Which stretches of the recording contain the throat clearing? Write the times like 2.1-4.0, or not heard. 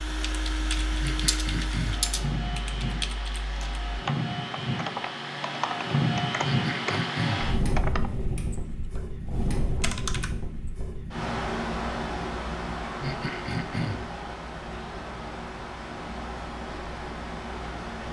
1.0-2.1, 6.4-7.5, 13.0-14.1.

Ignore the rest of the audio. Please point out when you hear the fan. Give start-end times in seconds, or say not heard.
0.0-18.0.